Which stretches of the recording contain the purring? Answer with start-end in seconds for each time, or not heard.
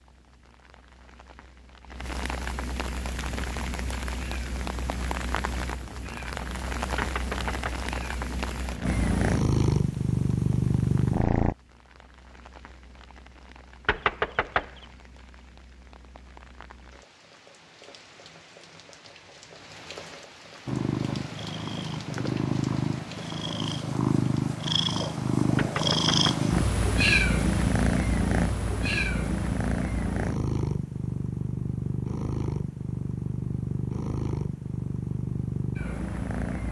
3.1-11.6, 20.6-36.6.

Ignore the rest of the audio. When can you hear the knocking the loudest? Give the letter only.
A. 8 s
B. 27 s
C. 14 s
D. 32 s
C.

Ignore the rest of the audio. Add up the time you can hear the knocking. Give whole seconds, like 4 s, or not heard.
3 s.